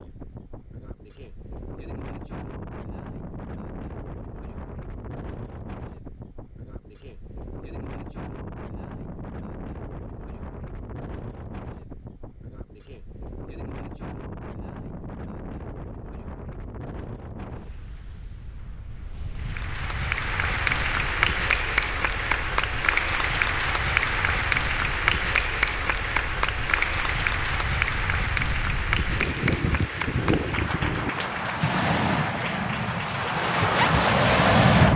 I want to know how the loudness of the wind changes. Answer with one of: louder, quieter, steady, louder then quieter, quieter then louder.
louder.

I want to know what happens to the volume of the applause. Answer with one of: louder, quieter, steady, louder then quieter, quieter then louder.
quieter.